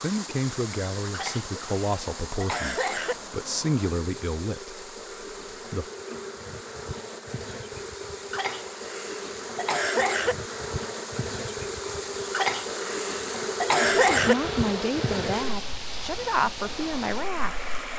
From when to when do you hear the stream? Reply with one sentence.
The stream can be heard from 0.0 to 17.9 s.